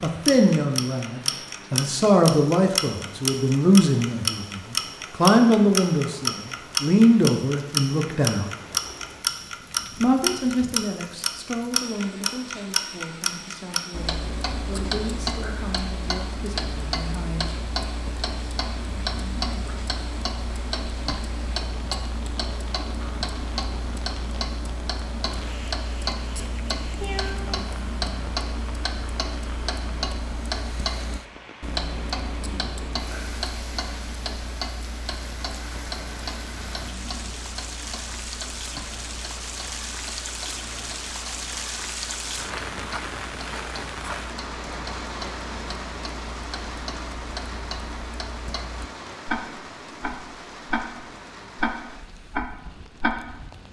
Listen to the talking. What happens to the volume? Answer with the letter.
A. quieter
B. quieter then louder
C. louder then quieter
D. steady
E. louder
A.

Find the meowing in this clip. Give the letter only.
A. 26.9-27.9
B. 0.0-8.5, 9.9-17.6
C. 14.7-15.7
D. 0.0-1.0
A.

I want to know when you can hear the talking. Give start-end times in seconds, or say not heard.
0.0-8.5, 9.9-17.6.